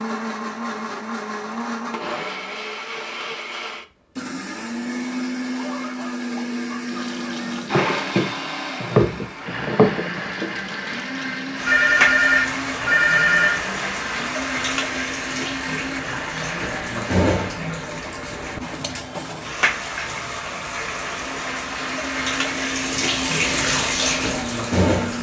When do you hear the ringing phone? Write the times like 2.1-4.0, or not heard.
11.7-13.6.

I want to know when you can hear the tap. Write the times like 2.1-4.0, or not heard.
6.8-25.1.